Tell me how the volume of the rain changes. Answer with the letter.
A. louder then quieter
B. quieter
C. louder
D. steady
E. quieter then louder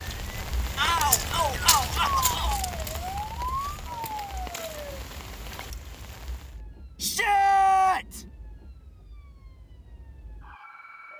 B.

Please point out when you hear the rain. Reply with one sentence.
You can hear the rain from 0.0 to 6.5 s.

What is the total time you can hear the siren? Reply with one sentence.
You can hear the siren for 11 seconds altogether.